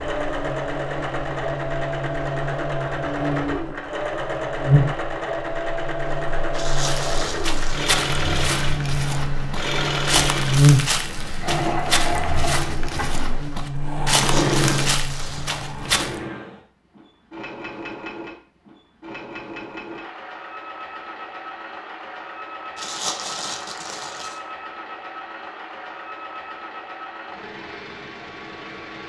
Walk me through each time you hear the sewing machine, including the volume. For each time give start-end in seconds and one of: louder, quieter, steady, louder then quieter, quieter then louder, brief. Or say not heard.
0.0-29.0 quieter.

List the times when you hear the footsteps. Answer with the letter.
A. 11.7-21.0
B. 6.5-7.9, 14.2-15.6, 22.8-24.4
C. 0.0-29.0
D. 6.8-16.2
D.